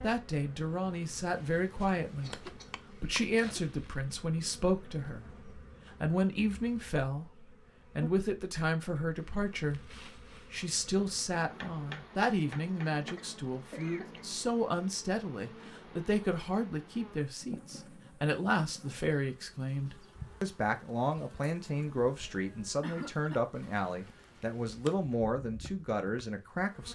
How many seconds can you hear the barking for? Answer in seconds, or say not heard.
not heard.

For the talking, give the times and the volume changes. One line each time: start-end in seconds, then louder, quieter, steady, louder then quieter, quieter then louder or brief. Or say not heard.
0.0-26.9 steady.